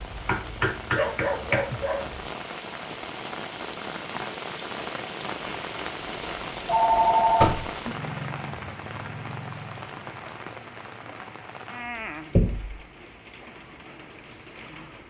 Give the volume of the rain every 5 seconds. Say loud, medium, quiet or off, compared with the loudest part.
loud, loud, medium.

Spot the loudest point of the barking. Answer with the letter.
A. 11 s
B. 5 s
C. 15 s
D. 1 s
D.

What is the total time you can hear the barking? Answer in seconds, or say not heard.
2 s.